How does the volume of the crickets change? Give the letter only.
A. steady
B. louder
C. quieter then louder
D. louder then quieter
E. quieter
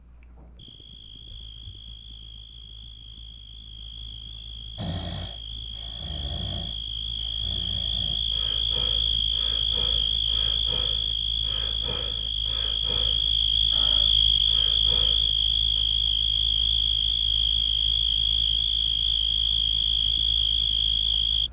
B.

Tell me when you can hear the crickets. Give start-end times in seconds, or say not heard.
0.0-21.4.